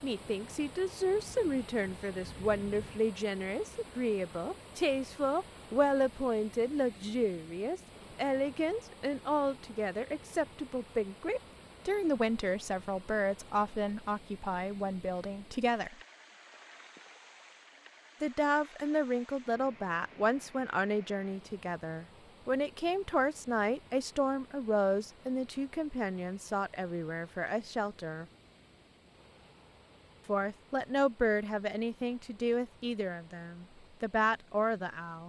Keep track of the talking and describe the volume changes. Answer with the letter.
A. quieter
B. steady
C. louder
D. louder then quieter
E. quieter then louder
B.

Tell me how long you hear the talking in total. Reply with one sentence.
The talking can be heard for 31 seconds in total.